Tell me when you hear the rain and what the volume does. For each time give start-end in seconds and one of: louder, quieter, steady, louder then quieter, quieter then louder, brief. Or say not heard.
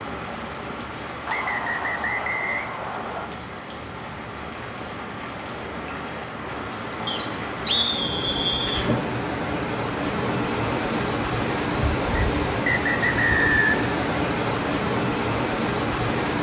0.0-16.3 louder.